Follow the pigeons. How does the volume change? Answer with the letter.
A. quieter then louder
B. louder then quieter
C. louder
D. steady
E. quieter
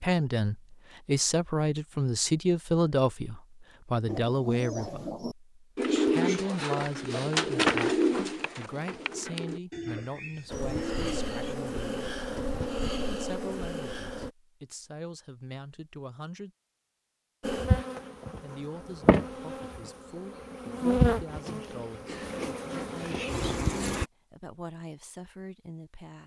B.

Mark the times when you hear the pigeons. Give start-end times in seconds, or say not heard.
4.0-11.6.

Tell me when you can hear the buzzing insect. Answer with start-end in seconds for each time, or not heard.
10.5-14.3, 17.4-24.1.